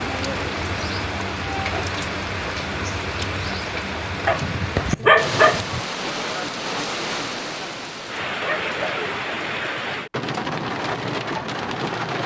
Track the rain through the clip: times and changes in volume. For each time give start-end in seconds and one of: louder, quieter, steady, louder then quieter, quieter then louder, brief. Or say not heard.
0.0-12.2 steady.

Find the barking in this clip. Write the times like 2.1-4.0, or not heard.
4.2-5.8.